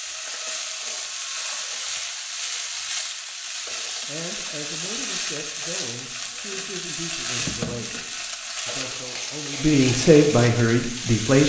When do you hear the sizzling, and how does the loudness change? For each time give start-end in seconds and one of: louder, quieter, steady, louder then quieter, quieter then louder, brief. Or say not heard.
0.0-11.4 steady.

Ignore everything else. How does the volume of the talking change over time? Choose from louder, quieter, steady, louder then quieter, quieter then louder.
louder.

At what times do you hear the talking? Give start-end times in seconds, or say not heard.
4.0-11.4.